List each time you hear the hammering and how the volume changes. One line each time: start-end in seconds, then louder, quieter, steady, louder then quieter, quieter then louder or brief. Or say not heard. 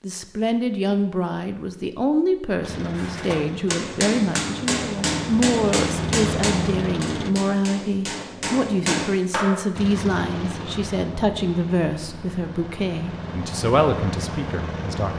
3.0-9.6 quieter then louder.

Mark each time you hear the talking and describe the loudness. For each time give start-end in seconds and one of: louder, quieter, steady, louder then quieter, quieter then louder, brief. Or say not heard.
0.0-15.1 steady.